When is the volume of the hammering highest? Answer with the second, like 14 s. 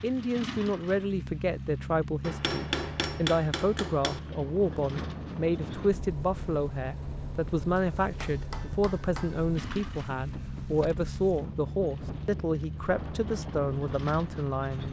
3 s.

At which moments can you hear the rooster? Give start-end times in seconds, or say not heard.
not heard.